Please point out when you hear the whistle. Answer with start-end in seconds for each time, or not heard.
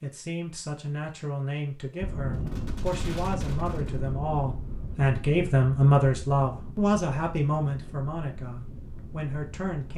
not heard.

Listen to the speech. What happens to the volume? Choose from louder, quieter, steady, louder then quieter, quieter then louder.
louder then quieter.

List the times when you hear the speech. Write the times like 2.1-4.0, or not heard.
0.0-9.9.